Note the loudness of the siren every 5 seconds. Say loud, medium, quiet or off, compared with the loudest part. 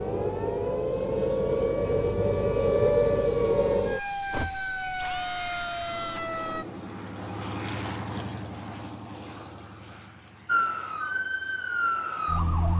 loud, medium, loud.